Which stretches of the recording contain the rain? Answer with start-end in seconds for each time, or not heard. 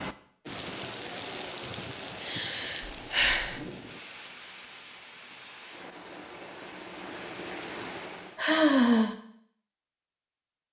0.0-8.4.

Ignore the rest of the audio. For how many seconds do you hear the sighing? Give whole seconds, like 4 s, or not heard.
2 s.